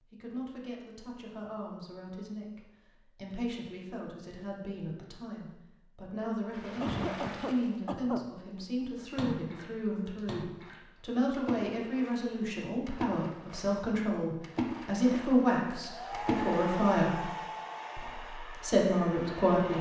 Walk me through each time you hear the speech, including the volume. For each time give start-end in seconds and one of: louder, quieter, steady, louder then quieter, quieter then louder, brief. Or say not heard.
0.0-17.3 louder
17.9-19.7 brief.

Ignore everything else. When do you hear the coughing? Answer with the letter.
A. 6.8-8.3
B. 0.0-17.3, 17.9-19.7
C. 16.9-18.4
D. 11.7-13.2
A.